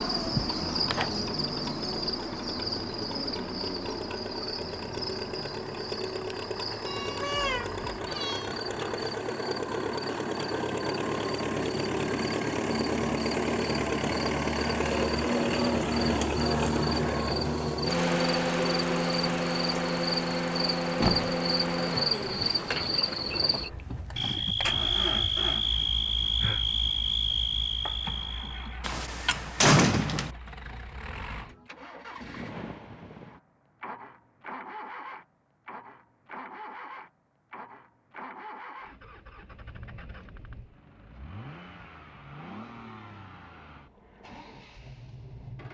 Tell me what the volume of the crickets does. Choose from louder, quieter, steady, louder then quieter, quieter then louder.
quieter then louder.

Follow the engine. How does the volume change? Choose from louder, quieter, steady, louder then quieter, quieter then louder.
louder then quieter.